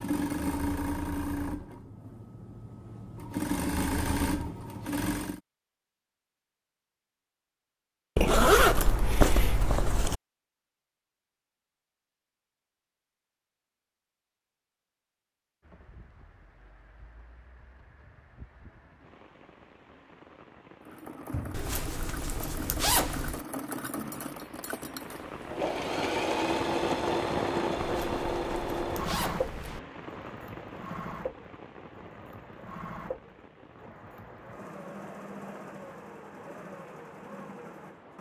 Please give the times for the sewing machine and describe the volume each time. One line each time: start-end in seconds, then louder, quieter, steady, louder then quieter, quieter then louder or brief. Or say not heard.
0.0-5.4 quieter then louder
20.8-38.1 louder then quieter.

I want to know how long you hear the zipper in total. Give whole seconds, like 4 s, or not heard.
6 s.